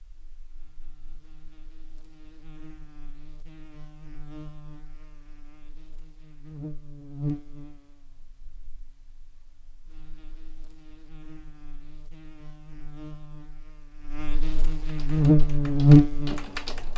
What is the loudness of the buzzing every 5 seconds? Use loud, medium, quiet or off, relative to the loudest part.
quiet, quiet, quiet, loud.